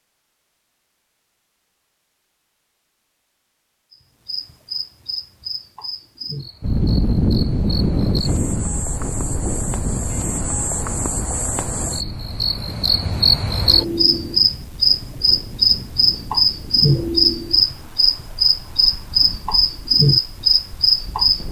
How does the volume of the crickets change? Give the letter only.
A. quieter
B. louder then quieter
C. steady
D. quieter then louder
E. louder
E.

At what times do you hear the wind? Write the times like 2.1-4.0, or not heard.
6.6-21.4.